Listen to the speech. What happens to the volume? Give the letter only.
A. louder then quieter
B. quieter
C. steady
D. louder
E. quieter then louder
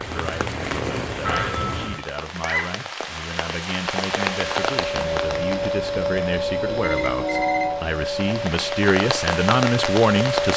D.